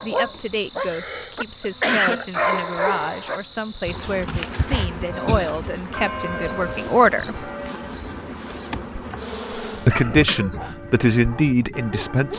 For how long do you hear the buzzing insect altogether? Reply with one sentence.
The buzzing insect can be heard for 10 seconds in total.